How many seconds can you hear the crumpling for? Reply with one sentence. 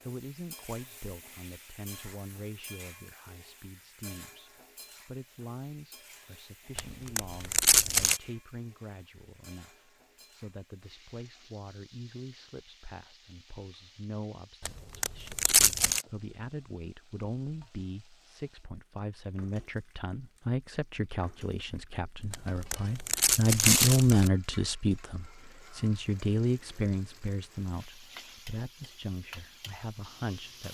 You can hear the crumpling for 5 seconds altogether.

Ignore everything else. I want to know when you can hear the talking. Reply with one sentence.
The talking can be heard from 0.0 to 30.6 s.